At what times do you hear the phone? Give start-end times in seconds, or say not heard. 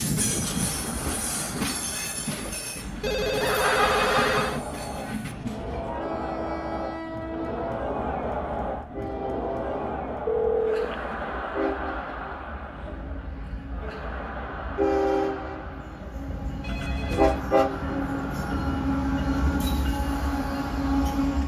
3.0-4.6, 10.2-11.4, 16.6-17.4.